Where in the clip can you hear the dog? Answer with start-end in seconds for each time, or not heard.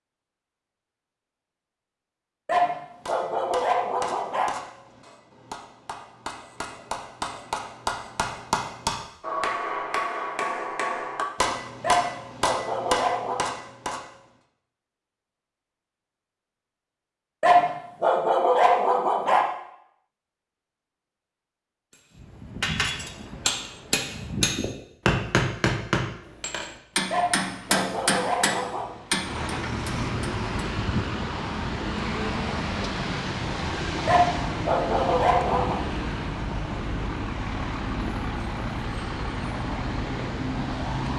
2.5-4.5, 11.8-13.4, 17.4-19.4, 27.1-28.9, 34.0-35.8.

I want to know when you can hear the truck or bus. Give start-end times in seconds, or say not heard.
27.1-41.1.